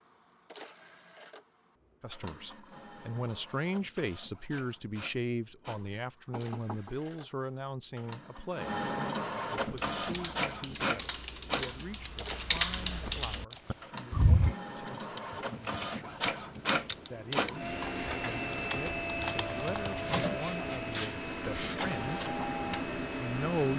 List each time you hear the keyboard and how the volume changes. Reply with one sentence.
You can hear the keyboard from 9.6 to 20.1 s, getting louder then quieter.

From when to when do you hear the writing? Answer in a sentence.
The writing can't be heard in this clip.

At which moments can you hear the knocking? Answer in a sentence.
The knocking can be heard from 6.3 to 7.0 s.